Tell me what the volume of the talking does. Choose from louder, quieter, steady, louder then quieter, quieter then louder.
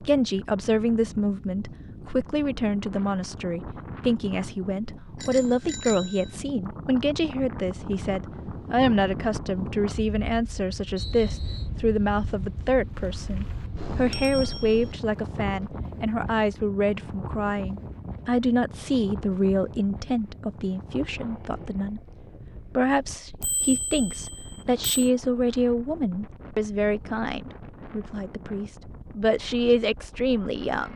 steady.